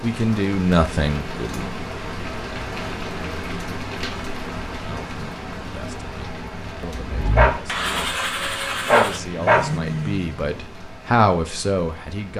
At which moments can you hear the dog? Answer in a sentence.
You can hear the dog from 7.3 to 9.6 s.